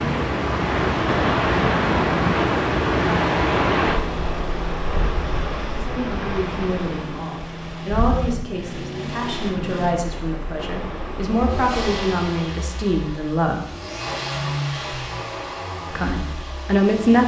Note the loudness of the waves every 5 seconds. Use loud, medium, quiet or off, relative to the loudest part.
loud, medium, quiet, off.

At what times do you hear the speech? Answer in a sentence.
You can hear the speech from 5.8 to 13.6 s and from 15.9 to 17.2 s.